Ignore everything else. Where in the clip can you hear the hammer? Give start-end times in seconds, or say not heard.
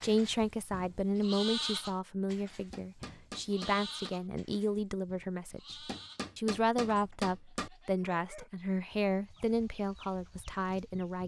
2.5-4.2, 5.7-7.7.